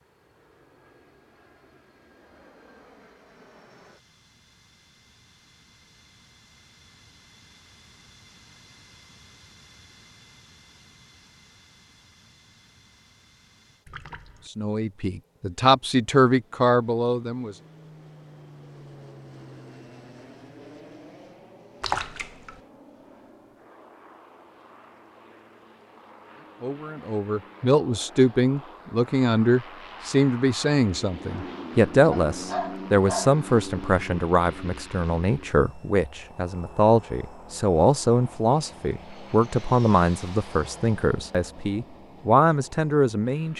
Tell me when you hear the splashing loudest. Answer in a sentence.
The loudest moment of the splashing is at 22 seconds.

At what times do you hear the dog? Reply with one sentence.
You can hear the dog from 32.1 to 33.4 s.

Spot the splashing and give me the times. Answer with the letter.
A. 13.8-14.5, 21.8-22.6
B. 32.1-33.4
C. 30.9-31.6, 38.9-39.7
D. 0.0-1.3
A.